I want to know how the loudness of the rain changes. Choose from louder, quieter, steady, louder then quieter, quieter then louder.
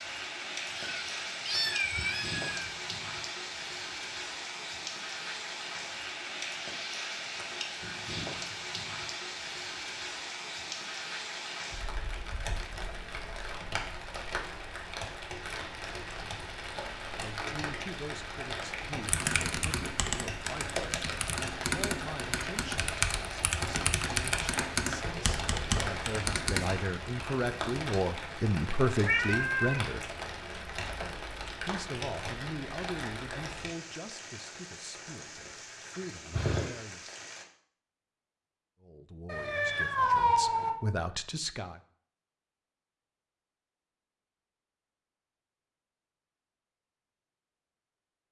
steady.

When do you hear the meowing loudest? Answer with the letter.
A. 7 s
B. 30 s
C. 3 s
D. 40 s
D.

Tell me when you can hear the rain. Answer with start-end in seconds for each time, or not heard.
0.0-37.5.